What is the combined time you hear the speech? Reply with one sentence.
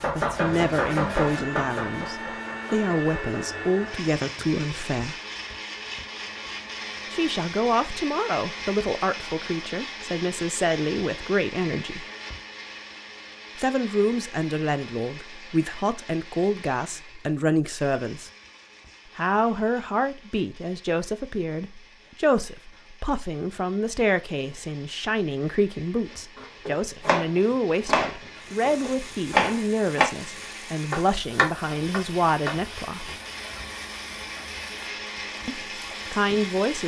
The speech can be heard for 30 seconds in total.